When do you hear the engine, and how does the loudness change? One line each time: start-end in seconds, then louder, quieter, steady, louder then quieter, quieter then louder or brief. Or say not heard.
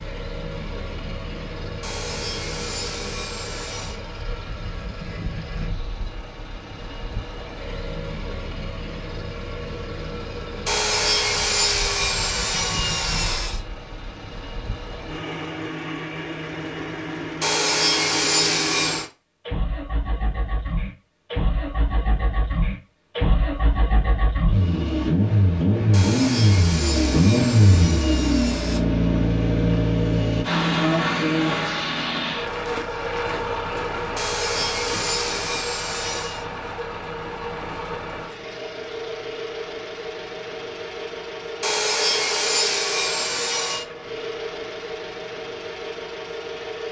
0.0-46.8 louder then quieter.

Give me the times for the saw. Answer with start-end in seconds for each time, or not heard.
1.8-4.0, 10.7-13.6, 17.4-19.1, 25.9-28.8, 34.1-36.5, 41.6-43.9.